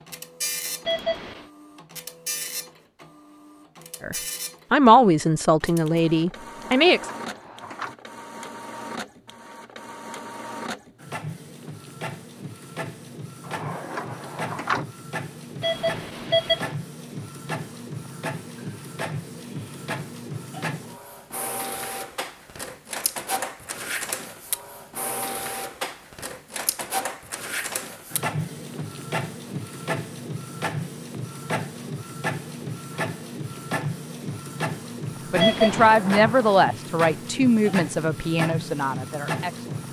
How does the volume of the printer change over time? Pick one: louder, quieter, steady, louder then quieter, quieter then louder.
louder.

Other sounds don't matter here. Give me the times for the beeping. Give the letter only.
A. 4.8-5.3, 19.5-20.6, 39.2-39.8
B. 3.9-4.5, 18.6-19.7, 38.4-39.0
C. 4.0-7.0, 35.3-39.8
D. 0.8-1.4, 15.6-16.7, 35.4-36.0
D.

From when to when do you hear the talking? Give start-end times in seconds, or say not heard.
4.0-7.0, 35.3-39.8.